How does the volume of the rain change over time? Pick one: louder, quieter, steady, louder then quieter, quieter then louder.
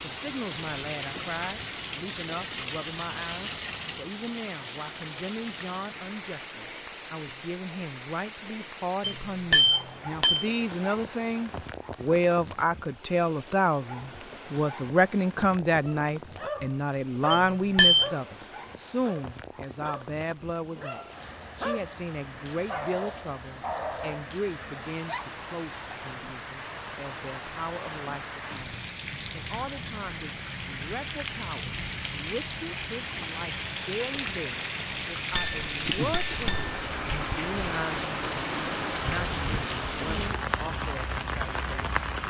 quieter then louder.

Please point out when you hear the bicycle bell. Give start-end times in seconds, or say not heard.
9.1-10.4, 17.3-18.1, 35.4-37.1.